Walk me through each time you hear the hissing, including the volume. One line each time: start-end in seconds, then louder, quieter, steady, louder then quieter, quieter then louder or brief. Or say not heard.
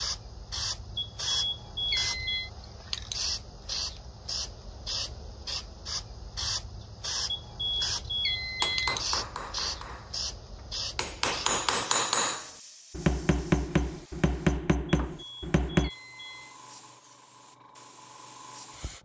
0.0-18.9 quieter.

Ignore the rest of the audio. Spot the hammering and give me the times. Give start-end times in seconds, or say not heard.
8.6-10.2, 10.9-15.9.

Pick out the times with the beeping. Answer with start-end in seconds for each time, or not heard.
0.9-2.5, 7.2-9.0, 15.1-16.6.